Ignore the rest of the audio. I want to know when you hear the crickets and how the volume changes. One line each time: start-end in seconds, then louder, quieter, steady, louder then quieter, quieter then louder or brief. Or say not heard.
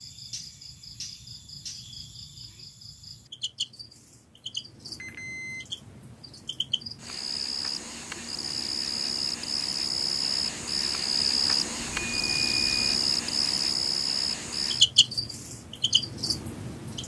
0.0-17.0 louder.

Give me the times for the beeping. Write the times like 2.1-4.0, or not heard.
5.0-5.7, 11.8-13.0.